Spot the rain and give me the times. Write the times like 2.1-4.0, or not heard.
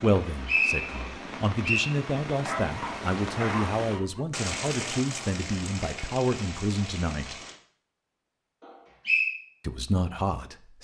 0.0-7.6.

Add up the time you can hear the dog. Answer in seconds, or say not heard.
2 s.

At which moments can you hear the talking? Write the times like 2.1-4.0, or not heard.
0.0-7.4, 9.6-10.8.